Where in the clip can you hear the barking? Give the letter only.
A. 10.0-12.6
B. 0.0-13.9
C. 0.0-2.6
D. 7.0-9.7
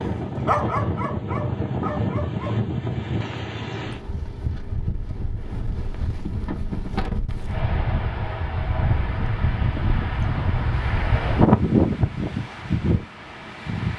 C.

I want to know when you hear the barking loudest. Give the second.
1 s.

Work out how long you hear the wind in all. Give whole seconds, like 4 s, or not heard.
14 s.